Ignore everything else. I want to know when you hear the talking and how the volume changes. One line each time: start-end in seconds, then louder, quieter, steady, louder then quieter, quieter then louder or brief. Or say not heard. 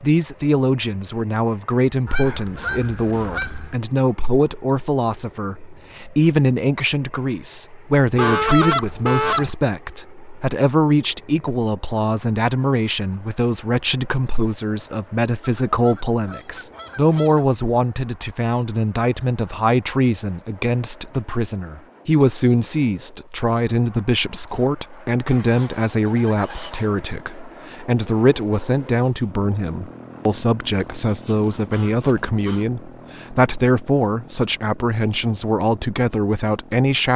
0.0-37.1 steady.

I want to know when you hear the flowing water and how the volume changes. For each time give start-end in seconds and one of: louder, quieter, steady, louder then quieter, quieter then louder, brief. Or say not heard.
not heard.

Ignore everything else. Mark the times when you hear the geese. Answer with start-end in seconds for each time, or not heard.
2.0-3.8, 8.2-9.5, 15.7-17.6, 25.3-26.9, 31.0-32.6.